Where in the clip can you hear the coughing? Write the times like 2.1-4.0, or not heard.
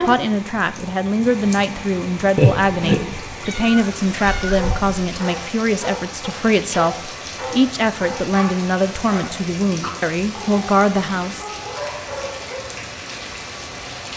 not heard.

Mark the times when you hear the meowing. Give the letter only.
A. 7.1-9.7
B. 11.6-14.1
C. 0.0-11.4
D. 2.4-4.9
D.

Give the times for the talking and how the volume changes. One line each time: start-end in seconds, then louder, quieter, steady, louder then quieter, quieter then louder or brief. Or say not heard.
0.0-11.4 steady.